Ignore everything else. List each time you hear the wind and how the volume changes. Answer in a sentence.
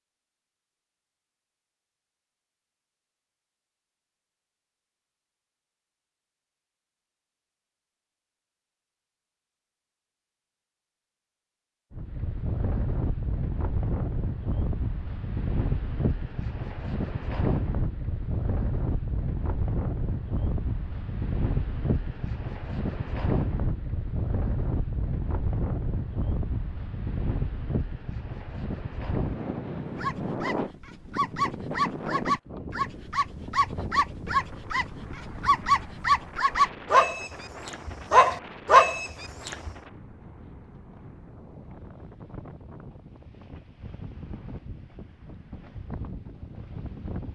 You can hear the wind from 11.9 to 47.3 s, getting quieter.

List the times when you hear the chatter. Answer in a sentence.
You can't hear the chatter here.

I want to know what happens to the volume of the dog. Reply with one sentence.
The volume of the dog goes up.